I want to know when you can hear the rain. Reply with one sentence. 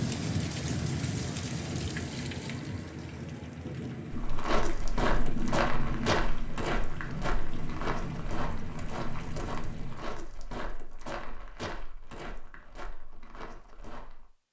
The rain can be heard from 0.0 to 10.2 s.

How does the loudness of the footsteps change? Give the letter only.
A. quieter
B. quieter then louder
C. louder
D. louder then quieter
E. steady
A.